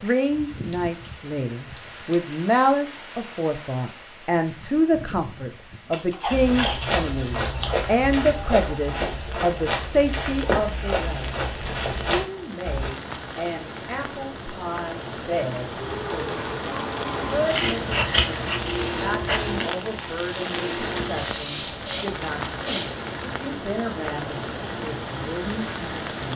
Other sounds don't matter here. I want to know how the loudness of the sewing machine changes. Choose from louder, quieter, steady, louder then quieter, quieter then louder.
steady.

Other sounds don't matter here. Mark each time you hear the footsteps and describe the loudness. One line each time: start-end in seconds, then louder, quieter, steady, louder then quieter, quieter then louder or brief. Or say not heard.
6.3-12.9 steady.